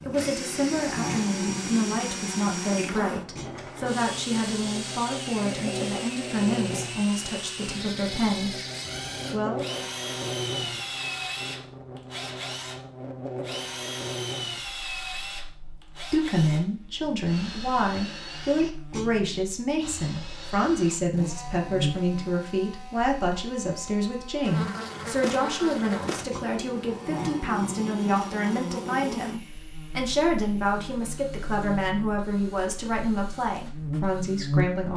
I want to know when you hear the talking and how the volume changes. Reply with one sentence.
The talking can be heard from 0.0 to 8.6 s, at a steady volume; briefly from 9.3 to 9.8 s; and from 16.1 to 34.9 s, at a steady volume.